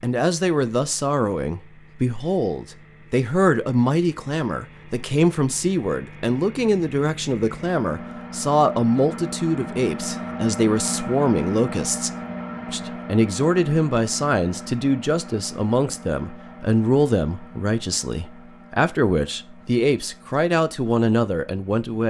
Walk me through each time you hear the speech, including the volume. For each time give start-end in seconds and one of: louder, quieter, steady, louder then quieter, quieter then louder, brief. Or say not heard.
0.0-22.0 steady.